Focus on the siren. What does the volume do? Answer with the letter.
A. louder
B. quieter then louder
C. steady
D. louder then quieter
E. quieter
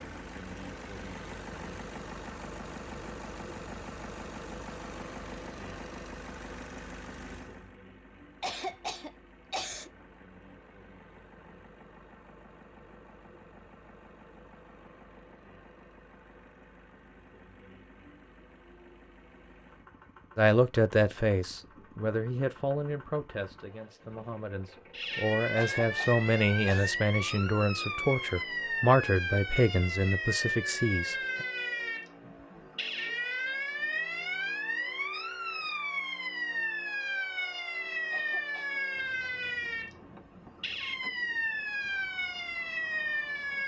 C.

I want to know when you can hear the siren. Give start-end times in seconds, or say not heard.
24.9-43.6.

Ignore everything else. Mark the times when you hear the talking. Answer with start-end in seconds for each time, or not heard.
20.4-31.4.